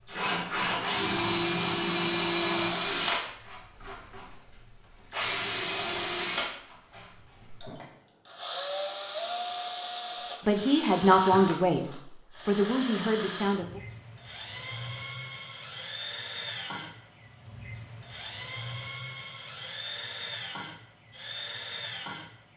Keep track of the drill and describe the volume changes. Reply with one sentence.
The volume of the drill goes down.